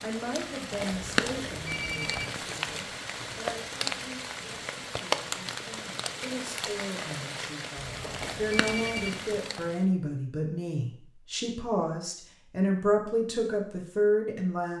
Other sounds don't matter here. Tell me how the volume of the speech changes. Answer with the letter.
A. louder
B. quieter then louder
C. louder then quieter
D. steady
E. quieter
B.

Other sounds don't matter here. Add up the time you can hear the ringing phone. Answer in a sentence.
The ringing phone can be heard for 3 seconds in total.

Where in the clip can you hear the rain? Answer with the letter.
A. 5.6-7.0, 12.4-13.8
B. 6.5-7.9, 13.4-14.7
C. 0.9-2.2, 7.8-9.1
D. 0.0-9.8
D.